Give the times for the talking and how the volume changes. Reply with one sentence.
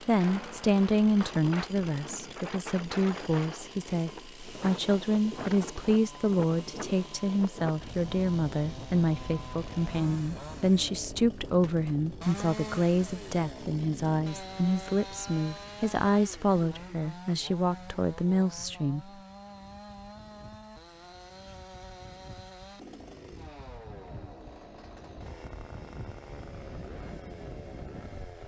The talking can be heard from 0.1 to 19.1 s, at a steady volume.